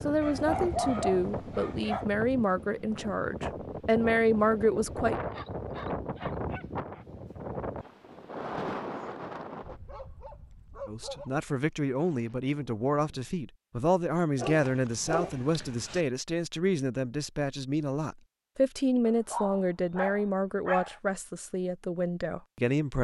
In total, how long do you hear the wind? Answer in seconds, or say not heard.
13 s.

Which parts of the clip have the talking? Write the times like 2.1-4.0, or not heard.
0.0-5.2, 10.8-22.9.